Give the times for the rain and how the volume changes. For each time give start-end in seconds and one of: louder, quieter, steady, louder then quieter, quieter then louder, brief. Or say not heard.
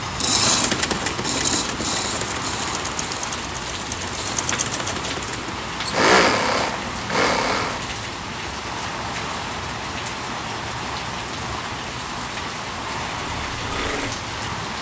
0.0-14.7 steady.